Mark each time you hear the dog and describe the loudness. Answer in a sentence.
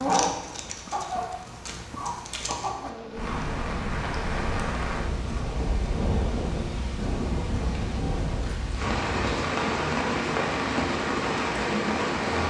The dog can't be heard in this clip.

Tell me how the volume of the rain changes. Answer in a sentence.
The loudness of the rain goes up.